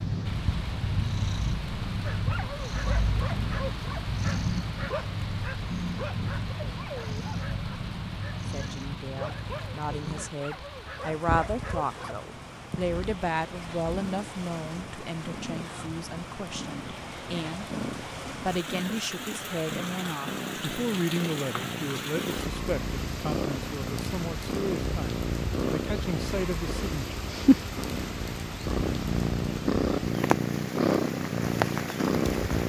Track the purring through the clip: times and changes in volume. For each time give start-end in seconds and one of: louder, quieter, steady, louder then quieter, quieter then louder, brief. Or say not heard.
0.0-32.6 quieter then louder.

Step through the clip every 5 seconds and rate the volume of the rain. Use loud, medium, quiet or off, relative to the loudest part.
medium, medium, medium, medium, medium, medium, loud.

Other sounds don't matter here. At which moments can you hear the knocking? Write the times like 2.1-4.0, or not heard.
not heard.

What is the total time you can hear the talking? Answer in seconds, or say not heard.
18 s.